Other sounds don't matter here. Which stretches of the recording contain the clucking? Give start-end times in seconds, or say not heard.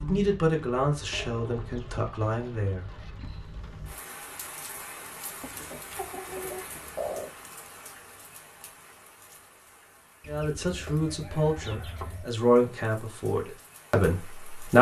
1.1-3.1, 5.4-7.3, 10.2-12.2.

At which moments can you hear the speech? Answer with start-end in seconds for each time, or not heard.
0.0-2.9, 10.2-14.7.